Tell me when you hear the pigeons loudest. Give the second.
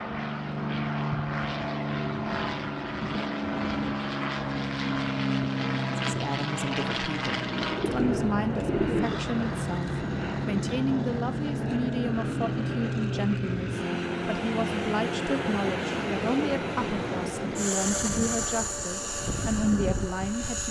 9 s.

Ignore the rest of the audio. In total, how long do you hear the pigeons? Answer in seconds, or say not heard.
2 s.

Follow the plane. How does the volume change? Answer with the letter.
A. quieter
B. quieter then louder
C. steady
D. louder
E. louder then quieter
C.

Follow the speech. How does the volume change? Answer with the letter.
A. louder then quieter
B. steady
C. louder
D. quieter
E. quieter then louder
B.